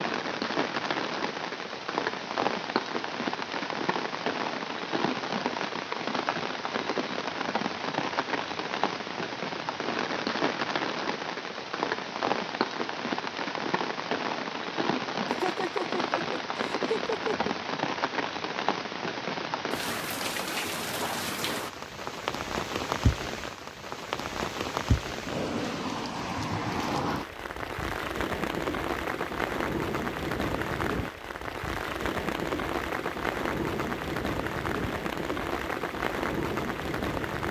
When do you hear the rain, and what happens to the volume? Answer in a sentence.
You can hear the rain from 0.0 to 37.4 s, at a steady volume.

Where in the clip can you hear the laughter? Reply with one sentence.
The laughter can be heard from 15.2 to 17.6 s.